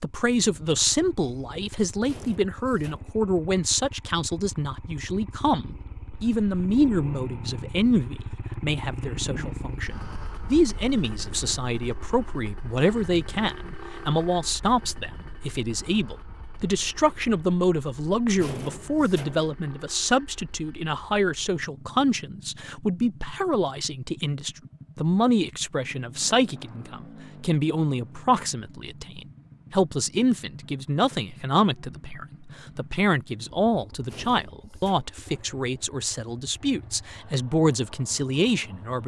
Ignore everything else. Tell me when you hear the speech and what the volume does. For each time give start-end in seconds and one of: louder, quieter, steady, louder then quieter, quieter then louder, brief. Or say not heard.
0.0-39.0 steady.